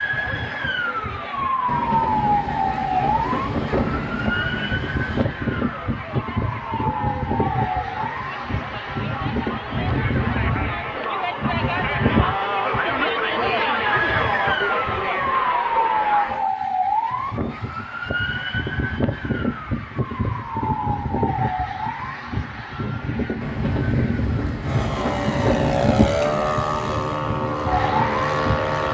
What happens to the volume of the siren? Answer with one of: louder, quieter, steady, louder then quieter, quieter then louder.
steady.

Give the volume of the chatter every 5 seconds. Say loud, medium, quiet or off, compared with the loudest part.
quiet, medium, loud, loud, off, off.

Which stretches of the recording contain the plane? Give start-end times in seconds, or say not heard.
24.6-28.8.